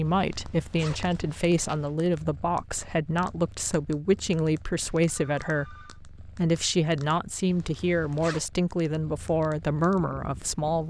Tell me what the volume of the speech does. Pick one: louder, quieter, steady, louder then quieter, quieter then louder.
steady.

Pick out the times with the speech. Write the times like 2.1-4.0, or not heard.
0.0-10.8.